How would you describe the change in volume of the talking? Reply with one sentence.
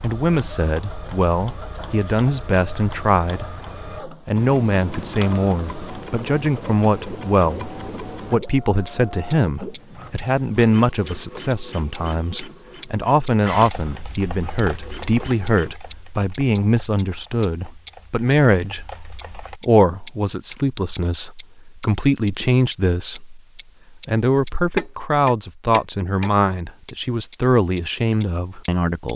The loudness of the talking stays about the same.